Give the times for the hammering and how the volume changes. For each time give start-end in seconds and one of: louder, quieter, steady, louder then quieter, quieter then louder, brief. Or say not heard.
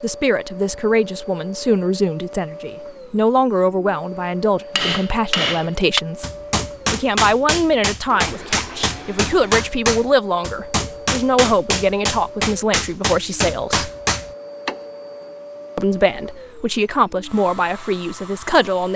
4.8-14.8 steady.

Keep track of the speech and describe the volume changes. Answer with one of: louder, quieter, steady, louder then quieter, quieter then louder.
steady.